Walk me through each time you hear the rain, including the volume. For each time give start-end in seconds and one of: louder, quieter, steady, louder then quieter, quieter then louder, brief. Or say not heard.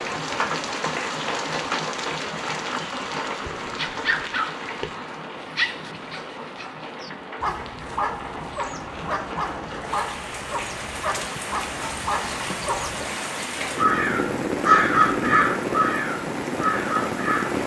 0.0-17.6 quieter then louder.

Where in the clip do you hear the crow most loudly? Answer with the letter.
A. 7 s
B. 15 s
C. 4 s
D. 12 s
B.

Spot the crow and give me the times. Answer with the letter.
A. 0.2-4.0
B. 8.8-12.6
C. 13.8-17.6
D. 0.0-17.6
C.